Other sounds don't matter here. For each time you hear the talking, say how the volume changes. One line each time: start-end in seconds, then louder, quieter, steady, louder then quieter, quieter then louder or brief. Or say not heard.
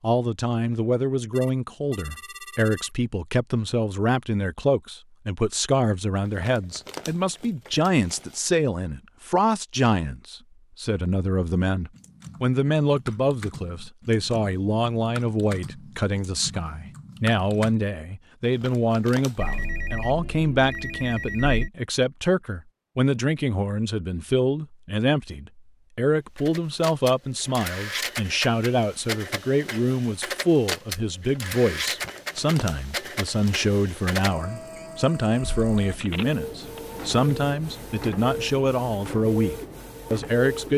0.0-40.7 steady.